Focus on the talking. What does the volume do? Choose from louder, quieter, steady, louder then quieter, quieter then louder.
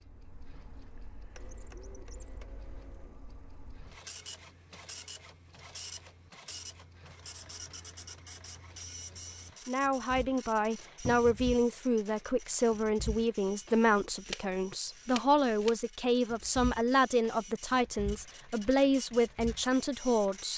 steady.